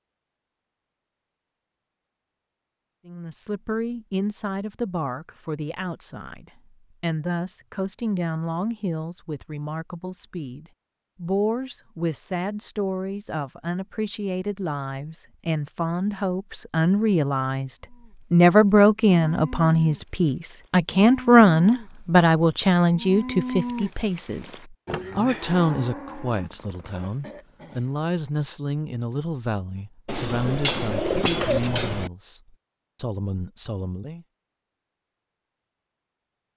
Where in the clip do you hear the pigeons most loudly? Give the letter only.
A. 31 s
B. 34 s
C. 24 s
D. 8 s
A.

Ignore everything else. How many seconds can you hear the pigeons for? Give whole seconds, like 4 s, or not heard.
2 s.